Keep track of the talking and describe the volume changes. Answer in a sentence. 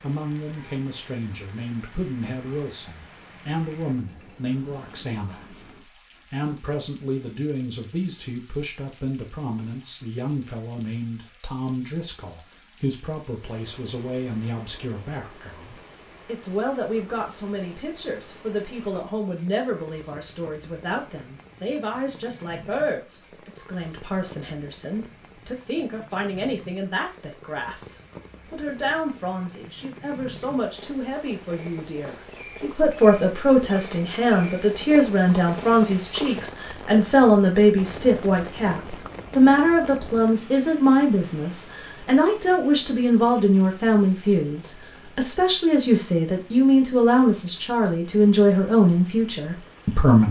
The volume of the talking goes up.